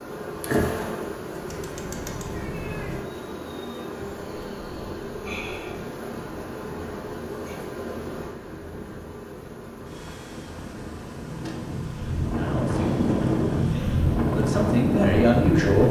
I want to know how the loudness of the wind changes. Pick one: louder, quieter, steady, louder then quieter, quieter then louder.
louder.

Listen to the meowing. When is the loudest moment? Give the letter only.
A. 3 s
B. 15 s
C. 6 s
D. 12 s
A.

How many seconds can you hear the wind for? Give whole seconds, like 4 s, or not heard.
12 s.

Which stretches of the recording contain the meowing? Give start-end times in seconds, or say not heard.
1.3-3.0.